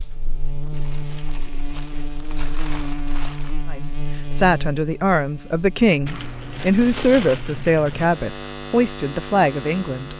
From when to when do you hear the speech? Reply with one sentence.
The speech can be heard from 3.6 to 10.1 s.